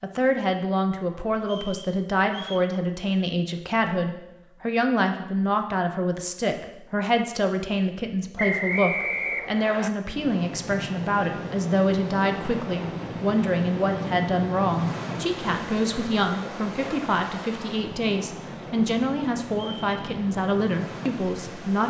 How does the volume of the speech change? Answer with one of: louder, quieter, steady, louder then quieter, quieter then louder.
steady.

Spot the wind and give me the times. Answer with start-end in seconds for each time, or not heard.
10.0-21.8.